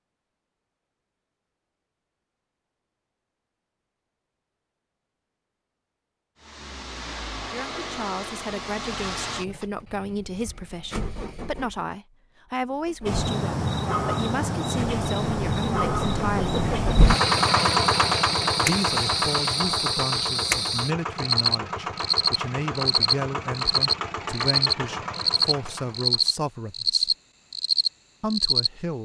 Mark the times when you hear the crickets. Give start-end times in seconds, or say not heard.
13.1-28.7.